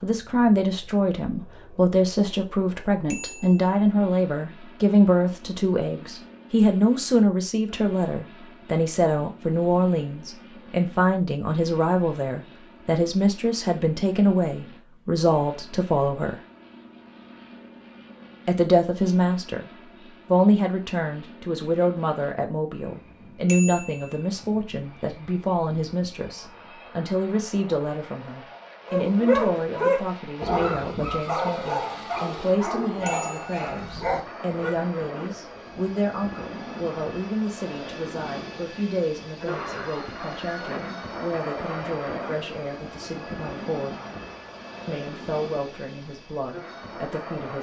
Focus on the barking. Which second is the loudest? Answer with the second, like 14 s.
29 s.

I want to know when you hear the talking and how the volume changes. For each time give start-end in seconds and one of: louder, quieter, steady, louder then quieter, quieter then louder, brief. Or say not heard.
0.0-16.4 steady
18.4-19.6 brief
20.2-44.0 quieter
44.9-47.5 brief.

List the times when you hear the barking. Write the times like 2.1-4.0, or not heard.
28.9-34.8.